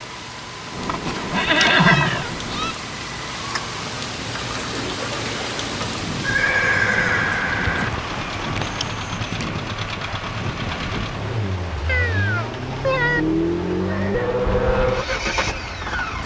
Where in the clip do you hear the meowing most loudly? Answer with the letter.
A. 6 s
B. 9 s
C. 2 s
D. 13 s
D.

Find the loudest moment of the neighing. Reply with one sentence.
The loudest moment of the neighing is at 2 seconds.